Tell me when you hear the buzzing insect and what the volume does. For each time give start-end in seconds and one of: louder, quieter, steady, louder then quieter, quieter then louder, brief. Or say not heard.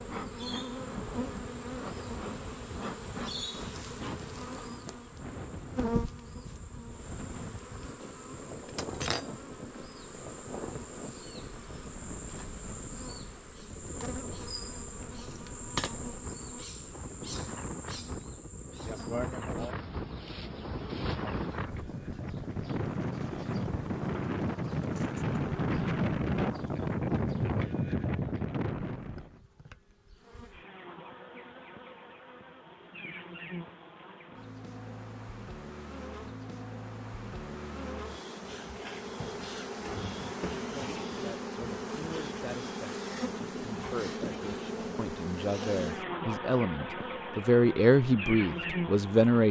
0.0-49.4 quieter then louder.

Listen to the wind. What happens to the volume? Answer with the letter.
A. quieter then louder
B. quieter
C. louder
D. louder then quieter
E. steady
C.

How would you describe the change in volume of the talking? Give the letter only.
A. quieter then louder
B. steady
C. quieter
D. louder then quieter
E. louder
E.